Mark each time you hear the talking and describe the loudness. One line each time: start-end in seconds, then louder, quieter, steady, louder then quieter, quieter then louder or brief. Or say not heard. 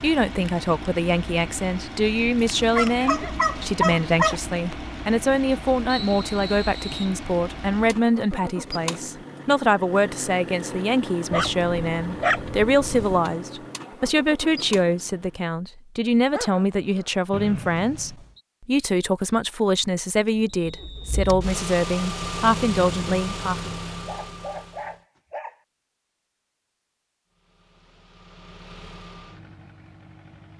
0.0-23.7 steady.